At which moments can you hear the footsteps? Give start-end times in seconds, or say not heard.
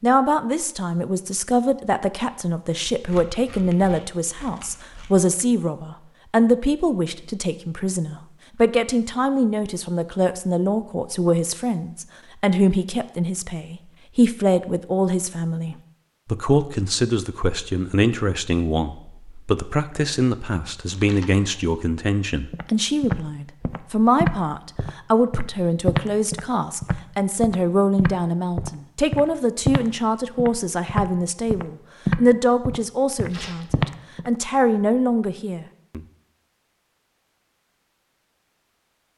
22.5-34.3.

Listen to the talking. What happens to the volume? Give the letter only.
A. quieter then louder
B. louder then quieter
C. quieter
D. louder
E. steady
E.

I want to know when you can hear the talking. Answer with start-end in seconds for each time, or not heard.
0.0-36.0.